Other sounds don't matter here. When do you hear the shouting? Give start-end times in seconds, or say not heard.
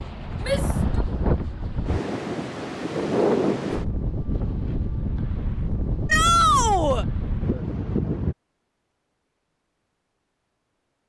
0.4-1.0, 6.0-7.0.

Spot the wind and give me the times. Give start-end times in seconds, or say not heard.
0.0-8.3.